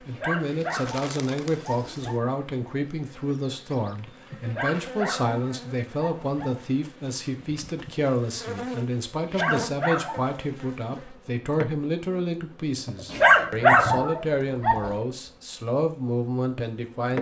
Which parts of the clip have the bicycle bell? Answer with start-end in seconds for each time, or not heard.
not heard.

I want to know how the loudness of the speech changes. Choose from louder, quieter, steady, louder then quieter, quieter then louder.
steady.